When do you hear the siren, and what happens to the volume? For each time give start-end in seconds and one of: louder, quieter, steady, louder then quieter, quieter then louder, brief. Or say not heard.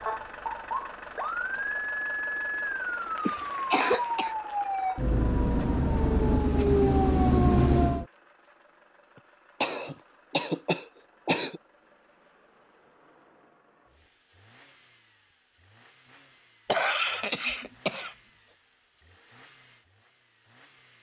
0.0-8.1 louder.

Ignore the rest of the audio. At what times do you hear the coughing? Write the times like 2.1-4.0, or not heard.
3.2-4.3, 9.6-11.6, 16.6-18.1.